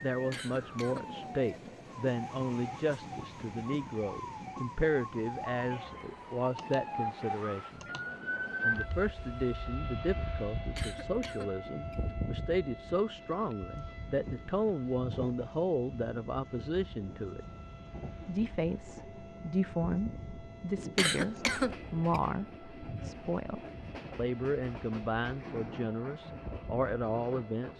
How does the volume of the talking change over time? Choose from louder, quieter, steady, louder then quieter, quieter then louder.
steady.